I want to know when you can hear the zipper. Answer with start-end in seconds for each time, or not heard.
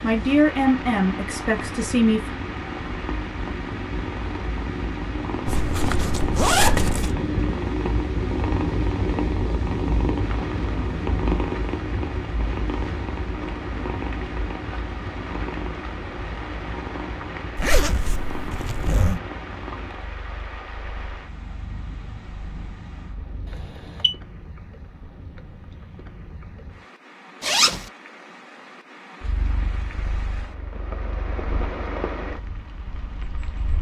5.5-7.2, 17.6-19.2, 27.4-27.9.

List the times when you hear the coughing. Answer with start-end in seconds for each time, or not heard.
not heard.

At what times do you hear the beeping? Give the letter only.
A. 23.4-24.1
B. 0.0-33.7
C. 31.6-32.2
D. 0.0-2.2
A.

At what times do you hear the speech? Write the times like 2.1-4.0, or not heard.
0.0-2.2.